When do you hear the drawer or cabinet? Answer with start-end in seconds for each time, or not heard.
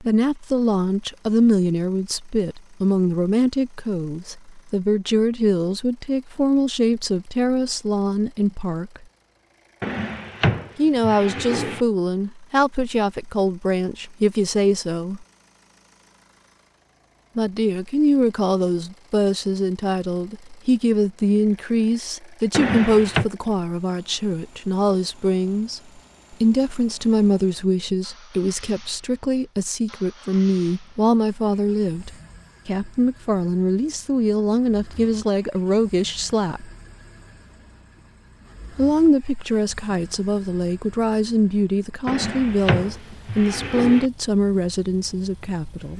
9.8-11.8, 22.5-23.2, 42.0-44.1.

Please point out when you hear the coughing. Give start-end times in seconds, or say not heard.
not heard.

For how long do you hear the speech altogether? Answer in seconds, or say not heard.
40 s.